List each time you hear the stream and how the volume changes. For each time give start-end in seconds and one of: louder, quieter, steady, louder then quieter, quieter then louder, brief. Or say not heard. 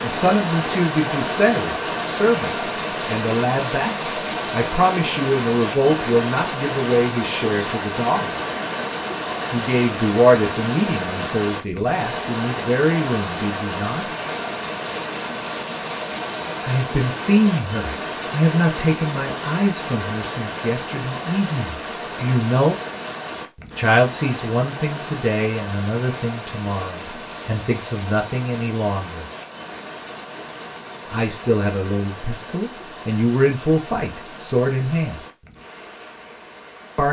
0.0-37.0 quieter.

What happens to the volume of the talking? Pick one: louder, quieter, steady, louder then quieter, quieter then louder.
steady.